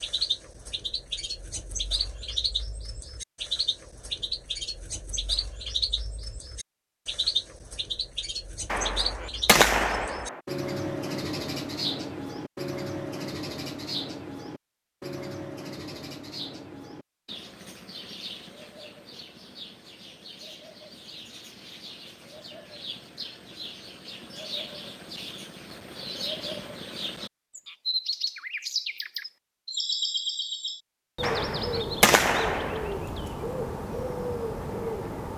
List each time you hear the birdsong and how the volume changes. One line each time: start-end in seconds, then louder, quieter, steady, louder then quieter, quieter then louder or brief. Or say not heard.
0.0-35.3 quieter then louder.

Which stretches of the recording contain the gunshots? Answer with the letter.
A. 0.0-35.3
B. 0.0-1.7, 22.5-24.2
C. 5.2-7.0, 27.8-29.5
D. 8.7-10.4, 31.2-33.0
D.